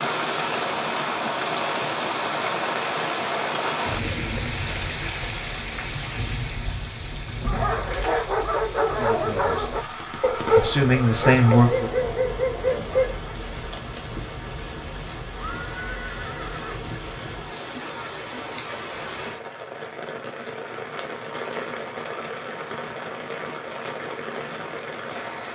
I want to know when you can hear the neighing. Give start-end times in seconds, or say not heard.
15.3-16.9.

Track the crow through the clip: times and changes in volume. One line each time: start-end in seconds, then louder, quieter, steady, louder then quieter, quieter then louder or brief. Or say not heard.
not heard.